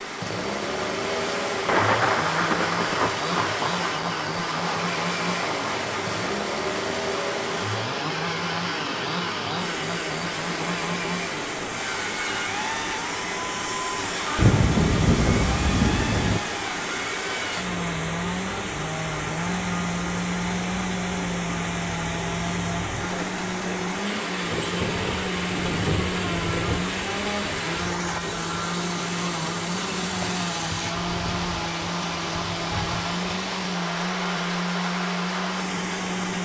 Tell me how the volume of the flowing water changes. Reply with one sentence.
The loudness of the flowing water stays about the same.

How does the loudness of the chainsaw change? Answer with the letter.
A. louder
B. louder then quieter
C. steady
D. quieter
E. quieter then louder
C.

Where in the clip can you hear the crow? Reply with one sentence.
You can't hear the crow here.